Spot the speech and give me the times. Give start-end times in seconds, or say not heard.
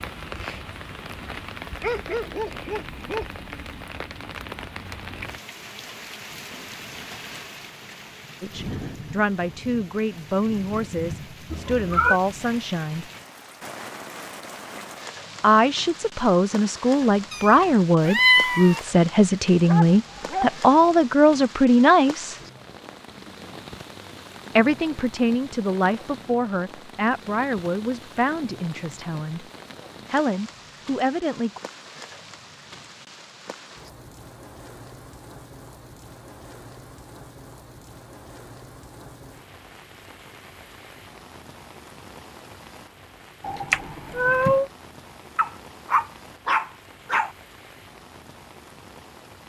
8.4-13.1, 15.4-22.4, 24.6-29.4, 30.1-31.6.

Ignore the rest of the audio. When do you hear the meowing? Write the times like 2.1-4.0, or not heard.
11.5-12.2, 17.3-18.8, 43.5-44.6.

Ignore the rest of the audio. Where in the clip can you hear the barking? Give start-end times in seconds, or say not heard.
1.8-3.2, 19.6-20.6, 45.4-47.3.